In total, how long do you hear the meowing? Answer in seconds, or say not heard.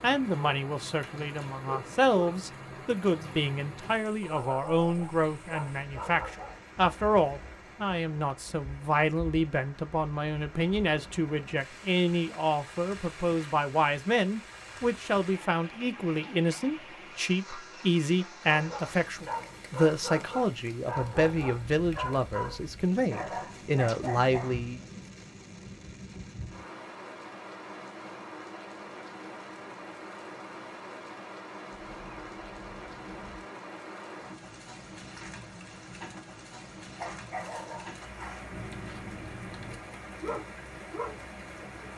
2 s.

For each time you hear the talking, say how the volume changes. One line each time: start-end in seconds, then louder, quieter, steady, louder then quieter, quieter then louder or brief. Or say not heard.
0.0-24.9 steady.